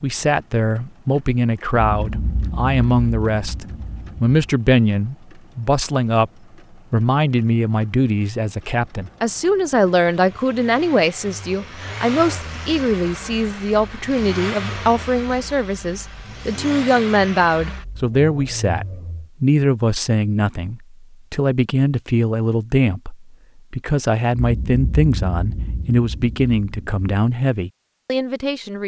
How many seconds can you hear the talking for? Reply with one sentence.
The talking can be heard for 28 seconds in total.